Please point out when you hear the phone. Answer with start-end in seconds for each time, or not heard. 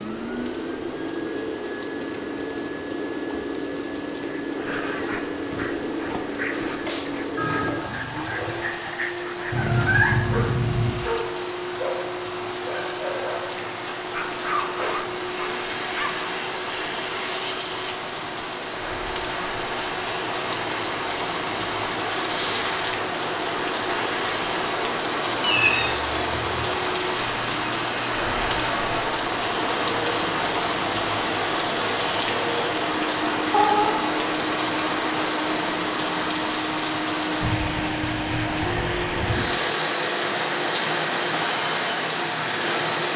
7.3-8.7.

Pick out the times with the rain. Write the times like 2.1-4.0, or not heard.
0.0-43.1.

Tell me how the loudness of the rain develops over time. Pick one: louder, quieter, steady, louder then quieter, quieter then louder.
louder.